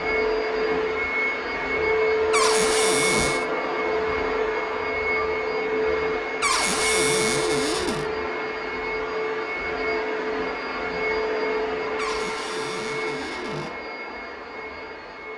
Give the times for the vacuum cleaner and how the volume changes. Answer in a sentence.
You can hear the vacuum cleaner from 0.0 to 15.3 s, getting quieter.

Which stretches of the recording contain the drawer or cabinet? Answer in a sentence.
The drawer or cabinet can be heard from 2.3 to 3.5 s, from 6.4 to 8.1 s and from 11.9 to 13.7 s.